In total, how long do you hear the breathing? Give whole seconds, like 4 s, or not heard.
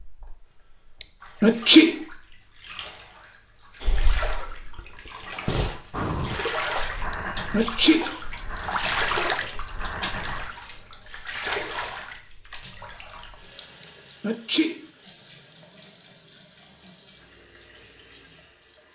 7 s.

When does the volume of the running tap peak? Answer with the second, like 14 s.
9 s.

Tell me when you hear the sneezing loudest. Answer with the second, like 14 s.
2 s.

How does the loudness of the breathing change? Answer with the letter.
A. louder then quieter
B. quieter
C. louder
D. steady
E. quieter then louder
A.